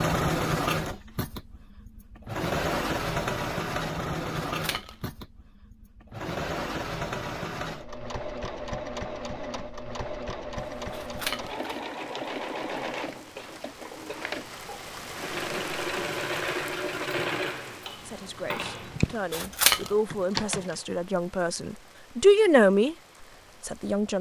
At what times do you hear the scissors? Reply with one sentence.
You can hear the scissors from 4.5 to 5.0 s, from 10.9 to 11.8 s and from 19.3 to 19.9 s.